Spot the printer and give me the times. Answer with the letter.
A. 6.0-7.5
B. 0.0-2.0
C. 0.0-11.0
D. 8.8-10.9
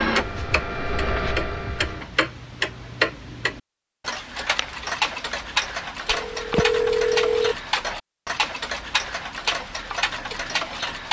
B.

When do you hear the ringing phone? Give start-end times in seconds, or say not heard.
6.0-7.5.